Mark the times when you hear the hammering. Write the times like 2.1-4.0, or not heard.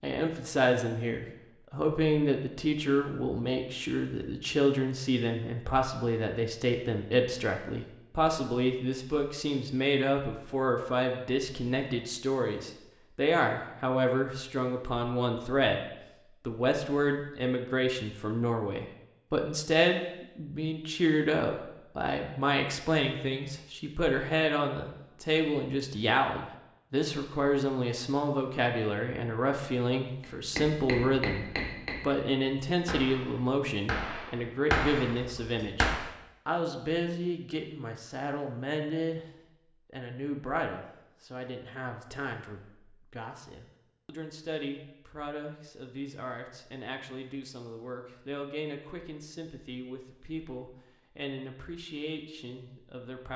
30.2-36.1.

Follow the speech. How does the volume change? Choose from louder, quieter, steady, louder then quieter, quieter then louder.
quieter.